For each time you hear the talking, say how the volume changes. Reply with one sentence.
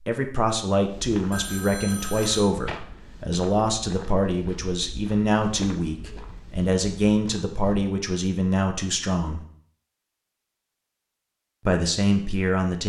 The talking can be heard from 0.1 to 9.4 s, at a steady volume; and briefly from 11.7 to 12.8 s.